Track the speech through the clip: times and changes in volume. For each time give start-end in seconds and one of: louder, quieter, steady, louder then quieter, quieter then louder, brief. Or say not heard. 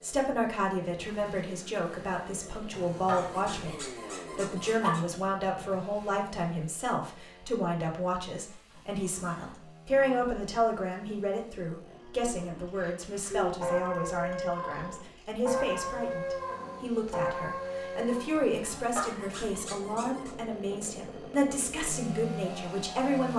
0.0-23.3 steady.